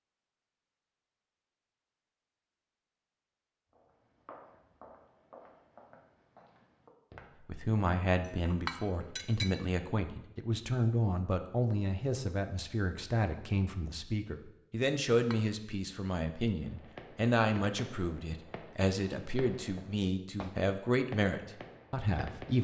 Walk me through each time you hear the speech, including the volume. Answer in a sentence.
The speech can be heard from 7.5 to 22.5 s, at a steady volume.